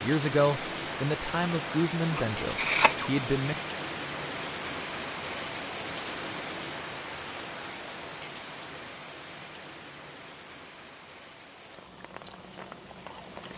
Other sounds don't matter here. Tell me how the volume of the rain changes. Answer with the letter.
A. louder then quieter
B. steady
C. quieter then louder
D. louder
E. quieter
E.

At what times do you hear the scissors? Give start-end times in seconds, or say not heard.
2.1-3.5.